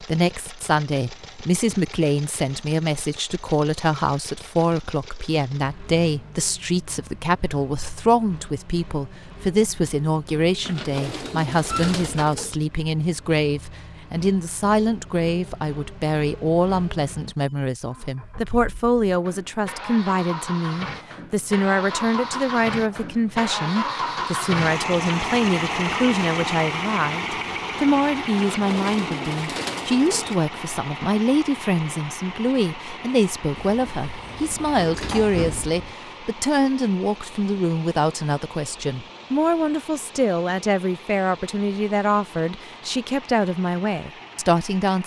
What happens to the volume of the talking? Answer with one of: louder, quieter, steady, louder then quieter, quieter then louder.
steady.